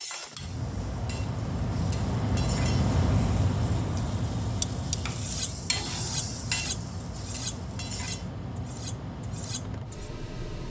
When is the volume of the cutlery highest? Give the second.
5 s.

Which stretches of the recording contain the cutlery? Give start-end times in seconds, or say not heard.
4.6-10.1.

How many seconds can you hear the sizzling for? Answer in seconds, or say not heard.
8 s.